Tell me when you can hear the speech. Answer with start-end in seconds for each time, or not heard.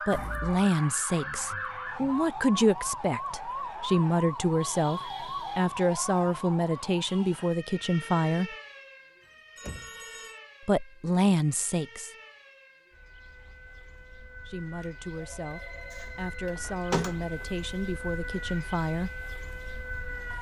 0.1-8.6, 10.7-12.1, 14.4-19.1.